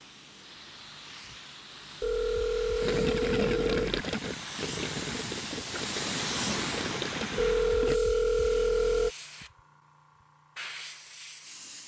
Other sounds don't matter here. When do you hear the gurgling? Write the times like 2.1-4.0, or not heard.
2.8-8.0.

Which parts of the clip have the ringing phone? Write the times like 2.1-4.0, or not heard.
2.0-3.9, 7.3-9.1.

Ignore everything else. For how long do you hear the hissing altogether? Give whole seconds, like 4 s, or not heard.
12 s.